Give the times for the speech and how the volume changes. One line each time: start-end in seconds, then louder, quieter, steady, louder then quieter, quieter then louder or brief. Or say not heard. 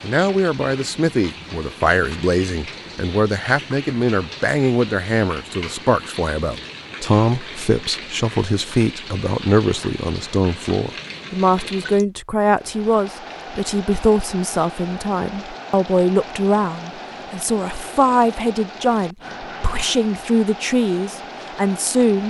0.0-22.2 steady.